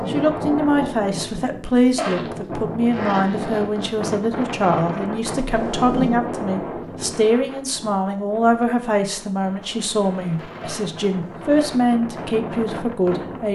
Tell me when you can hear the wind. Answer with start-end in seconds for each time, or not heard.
0.0-13.4.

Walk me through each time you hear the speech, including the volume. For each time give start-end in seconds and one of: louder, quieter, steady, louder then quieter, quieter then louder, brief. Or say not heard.
0.1-13.4 steady.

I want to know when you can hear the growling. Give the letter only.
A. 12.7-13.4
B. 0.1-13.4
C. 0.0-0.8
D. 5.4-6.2
D.